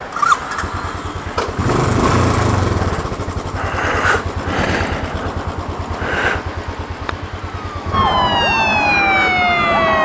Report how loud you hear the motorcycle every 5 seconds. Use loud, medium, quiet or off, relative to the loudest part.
loud, medium.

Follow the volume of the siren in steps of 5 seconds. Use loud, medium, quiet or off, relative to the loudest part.
off, loud.